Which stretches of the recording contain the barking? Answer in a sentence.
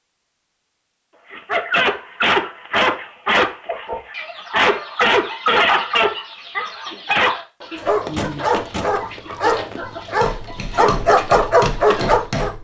You can hear the barking from 1.3 to 12.5 s.